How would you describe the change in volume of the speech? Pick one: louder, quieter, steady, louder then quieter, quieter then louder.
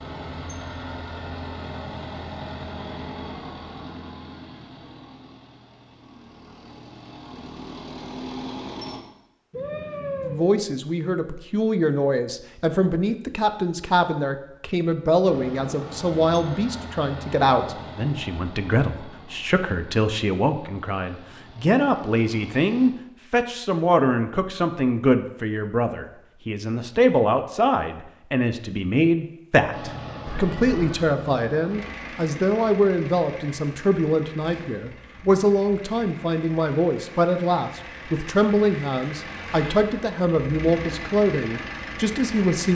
steady.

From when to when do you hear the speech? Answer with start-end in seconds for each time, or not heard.
10.2-42.6.